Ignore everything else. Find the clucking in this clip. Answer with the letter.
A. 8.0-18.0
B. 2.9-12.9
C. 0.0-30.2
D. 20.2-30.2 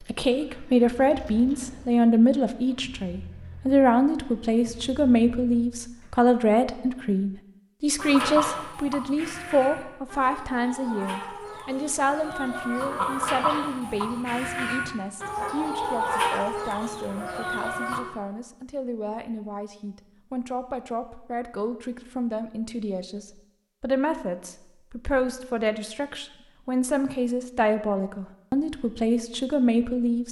A.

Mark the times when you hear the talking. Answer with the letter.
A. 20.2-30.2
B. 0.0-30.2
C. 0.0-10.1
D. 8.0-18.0
B.